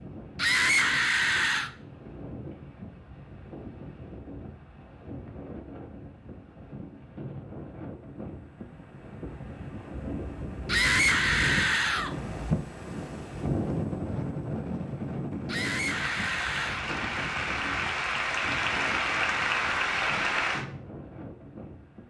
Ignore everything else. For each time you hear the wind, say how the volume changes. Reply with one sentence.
The wind can be heard from 0.0 to 22.0 s, getting louder then quieter.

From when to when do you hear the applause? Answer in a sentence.
The applause can be heard from 15.9 to 20.6 s.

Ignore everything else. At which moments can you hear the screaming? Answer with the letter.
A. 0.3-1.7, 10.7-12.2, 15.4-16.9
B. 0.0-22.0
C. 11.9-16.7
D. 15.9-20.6
A.